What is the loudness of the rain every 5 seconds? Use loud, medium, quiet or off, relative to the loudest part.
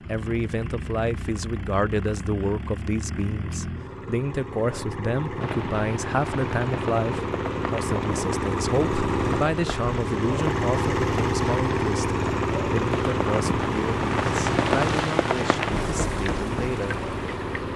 off, medium, loud, loud.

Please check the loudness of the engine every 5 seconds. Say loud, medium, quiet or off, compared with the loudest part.
medium, loud, loud, medium.